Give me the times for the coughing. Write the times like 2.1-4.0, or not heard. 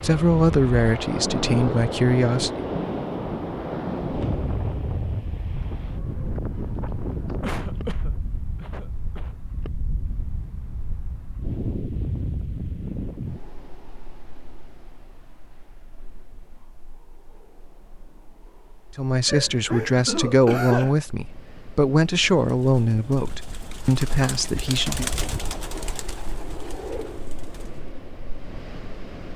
7.4-9.3, 19.2-20.9.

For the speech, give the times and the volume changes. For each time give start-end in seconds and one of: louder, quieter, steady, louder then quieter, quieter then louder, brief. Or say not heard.
0.0-2.6 brief
18.9-25.1 steady.